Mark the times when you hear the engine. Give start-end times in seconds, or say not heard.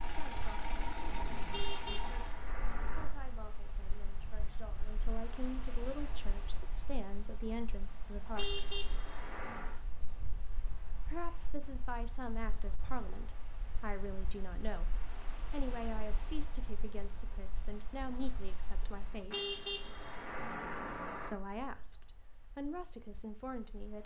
0.0-2.4.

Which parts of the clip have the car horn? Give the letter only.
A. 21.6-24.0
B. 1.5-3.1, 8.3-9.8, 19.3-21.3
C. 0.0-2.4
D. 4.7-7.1
B.